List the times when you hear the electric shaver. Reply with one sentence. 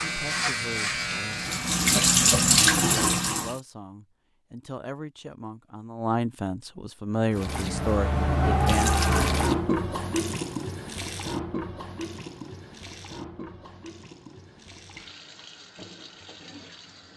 You can hear the electric shaver from 0.0 to 1.8 s.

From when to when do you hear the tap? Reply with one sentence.
You can hear the tap from 0.0 to 3.6 s and from 7.3 to 17.1 s.